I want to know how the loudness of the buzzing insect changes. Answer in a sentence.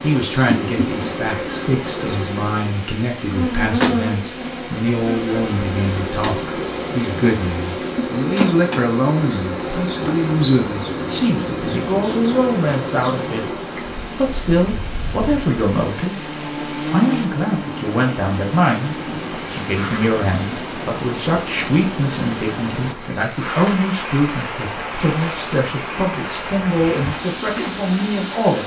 The loudness of the buzzing insect goes down.